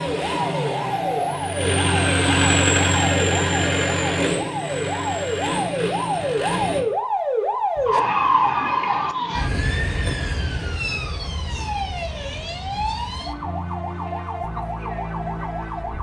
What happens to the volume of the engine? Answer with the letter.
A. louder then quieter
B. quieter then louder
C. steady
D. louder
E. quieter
A.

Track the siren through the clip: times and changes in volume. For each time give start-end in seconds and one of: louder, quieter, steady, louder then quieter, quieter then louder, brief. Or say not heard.
0.0-15.9 louder then quieter.